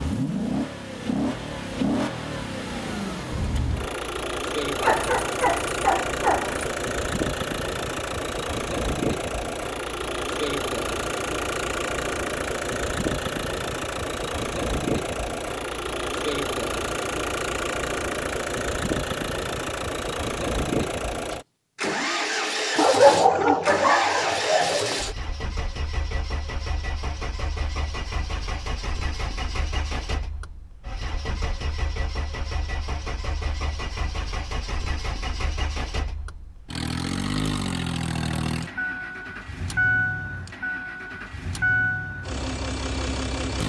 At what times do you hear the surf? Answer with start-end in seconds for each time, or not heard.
not heard.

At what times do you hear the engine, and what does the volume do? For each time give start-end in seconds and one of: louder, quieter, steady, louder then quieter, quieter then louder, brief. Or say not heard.
0.0-43.6 quieter then louder.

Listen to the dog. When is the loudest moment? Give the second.
23 s.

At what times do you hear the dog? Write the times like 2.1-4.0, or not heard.
4.8-6.7, 22.8-24.9.